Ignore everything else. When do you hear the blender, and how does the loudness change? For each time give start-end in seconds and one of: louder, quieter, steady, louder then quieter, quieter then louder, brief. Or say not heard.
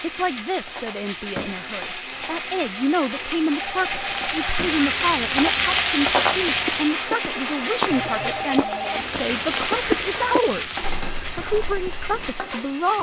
0.0-12.9 louder then quieter.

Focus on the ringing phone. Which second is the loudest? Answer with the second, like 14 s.
9 s.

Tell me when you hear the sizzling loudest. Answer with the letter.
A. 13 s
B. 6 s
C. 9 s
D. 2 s
B.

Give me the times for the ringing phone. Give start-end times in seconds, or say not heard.
3.5-4.5, 7.9-9.1.